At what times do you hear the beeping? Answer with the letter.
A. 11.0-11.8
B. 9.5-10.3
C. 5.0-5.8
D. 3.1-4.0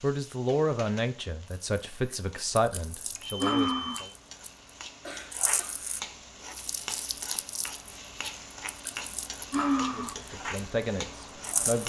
D.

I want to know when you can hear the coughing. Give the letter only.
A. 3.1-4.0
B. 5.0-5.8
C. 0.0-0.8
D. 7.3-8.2
B.